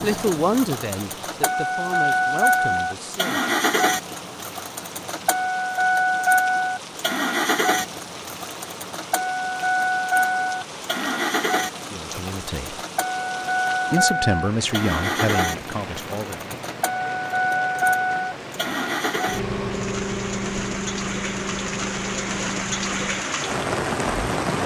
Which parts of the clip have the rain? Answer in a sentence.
You can hear the rain from 0.0 to 24.6 s.